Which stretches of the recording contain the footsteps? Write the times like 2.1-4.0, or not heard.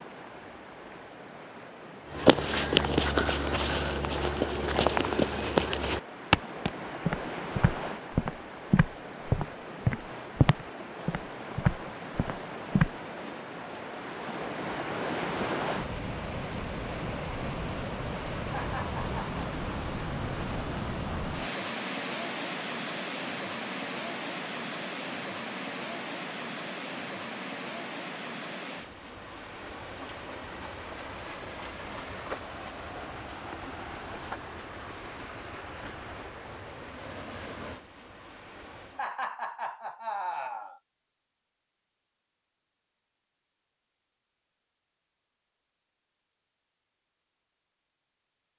2.1-12.9.